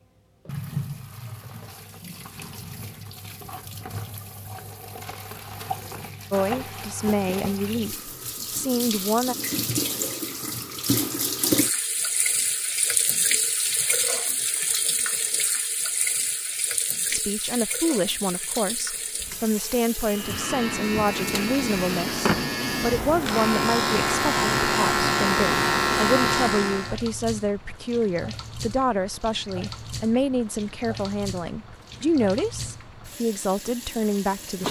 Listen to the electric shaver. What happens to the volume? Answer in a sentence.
The volume of the electric shaver goes up.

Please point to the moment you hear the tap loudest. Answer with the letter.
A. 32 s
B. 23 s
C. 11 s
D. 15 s
C.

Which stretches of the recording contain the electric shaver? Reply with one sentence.
The electric shaver can be heard from 20.0 to 27.0 s.